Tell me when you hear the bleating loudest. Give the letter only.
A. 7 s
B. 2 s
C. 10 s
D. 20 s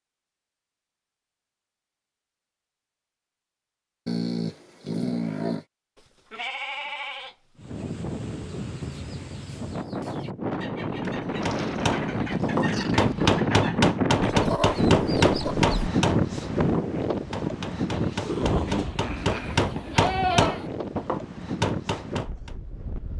D.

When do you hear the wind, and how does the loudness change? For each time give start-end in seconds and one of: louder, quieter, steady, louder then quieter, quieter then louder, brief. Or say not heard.
7.5-23.1 louder then quieter.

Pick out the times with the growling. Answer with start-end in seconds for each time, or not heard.
4.0-5.7, 11.4-13.4, 17.9-19.6.